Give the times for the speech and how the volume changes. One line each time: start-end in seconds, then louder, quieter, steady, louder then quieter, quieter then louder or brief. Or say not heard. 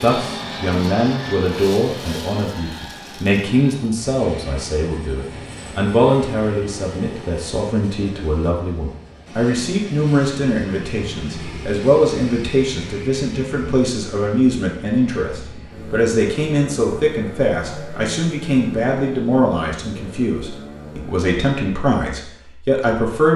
0.0-23.3 steady.